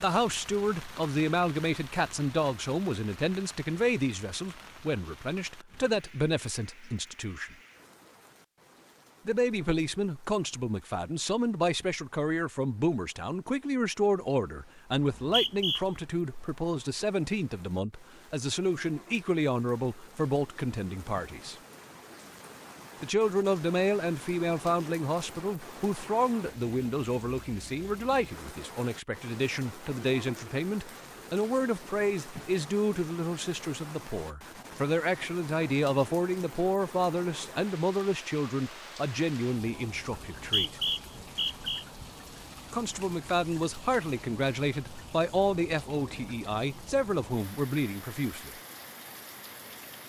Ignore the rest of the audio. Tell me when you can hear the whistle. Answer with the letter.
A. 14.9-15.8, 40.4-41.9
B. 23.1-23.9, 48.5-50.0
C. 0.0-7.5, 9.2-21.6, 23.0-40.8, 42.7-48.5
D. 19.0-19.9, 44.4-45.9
A.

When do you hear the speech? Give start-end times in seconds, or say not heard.
0.0-7.5, 9.2-21.6, 23.0-40.8, 42.7-48.5.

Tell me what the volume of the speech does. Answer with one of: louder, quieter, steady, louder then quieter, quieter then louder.
steady.